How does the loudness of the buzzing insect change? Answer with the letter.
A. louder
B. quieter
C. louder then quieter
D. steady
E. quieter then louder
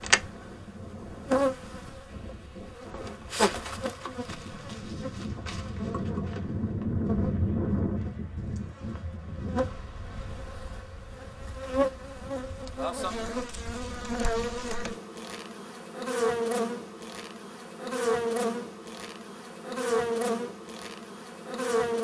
E.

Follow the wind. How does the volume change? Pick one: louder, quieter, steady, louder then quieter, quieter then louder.
louder then quieter.